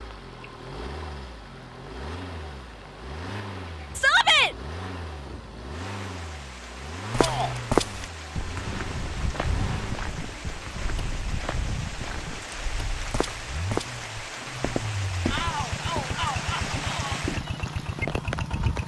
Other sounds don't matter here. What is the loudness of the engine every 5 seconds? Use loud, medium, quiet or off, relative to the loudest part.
medium, loud, medium, loud.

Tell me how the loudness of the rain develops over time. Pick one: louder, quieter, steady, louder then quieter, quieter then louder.
louder.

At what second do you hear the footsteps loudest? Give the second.
8 s.